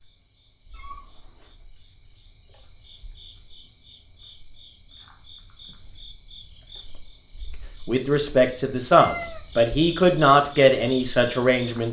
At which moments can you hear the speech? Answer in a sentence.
The speech can be heard from 7.8 to 11.8 s.